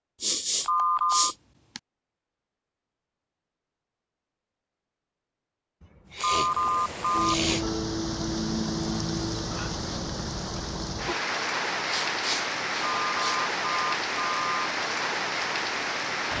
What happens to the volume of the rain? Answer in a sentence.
The volume of the rain stays about the same.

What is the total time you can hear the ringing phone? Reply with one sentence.
The ringing phone can be heard for 4 seconds in total.